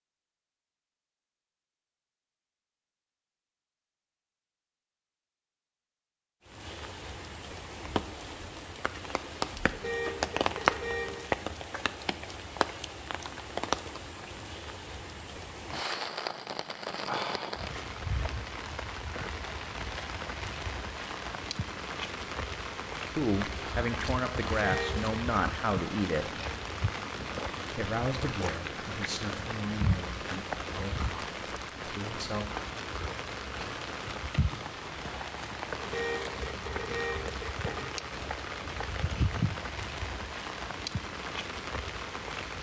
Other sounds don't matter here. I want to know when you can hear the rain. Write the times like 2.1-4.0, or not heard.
6.5-42.5.